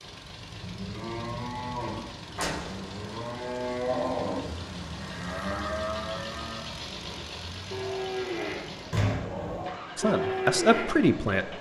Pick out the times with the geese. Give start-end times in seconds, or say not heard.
not heard.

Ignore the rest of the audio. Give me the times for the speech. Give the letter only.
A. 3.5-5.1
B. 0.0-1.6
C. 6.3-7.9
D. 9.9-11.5
D.